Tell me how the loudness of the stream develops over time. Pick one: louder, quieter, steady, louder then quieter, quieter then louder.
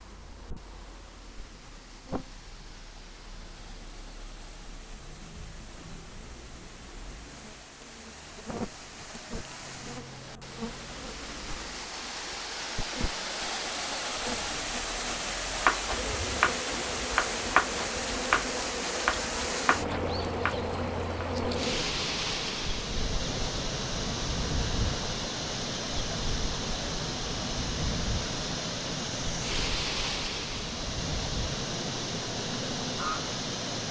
louder.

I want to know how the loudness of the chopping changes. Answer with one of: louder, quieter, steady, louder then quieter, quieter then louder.
quieter.